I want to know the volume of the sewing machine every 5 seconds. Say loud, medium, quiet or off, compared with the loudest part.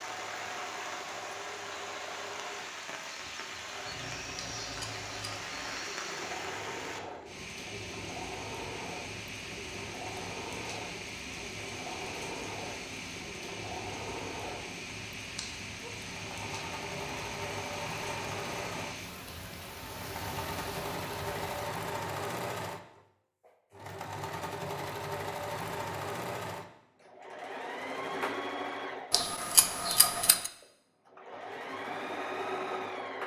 medium, medium, medium, loud, loud, loud, loud.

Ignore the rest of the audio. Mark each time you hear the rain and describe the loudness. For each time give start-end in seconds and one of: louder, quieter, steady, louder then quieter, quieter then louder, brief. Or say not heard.
0.0-21.6 steady.